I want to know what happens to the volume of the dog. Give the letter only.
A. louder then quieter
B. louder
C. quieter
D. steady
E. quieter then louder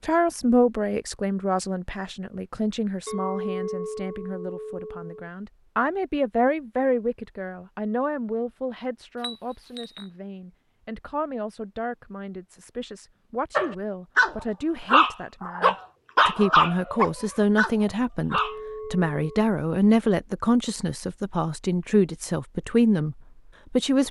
C.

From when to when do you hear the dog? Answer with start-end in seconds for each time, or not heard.
13.6-18.6.